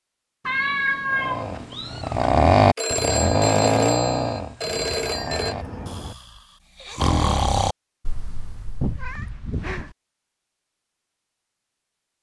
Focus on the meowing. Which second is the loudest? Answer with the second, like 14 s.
1 s.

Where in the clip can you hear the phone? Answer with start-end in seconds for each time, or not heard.
2.8-5.5.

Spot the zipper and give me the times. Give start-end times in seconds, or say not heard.
not heard.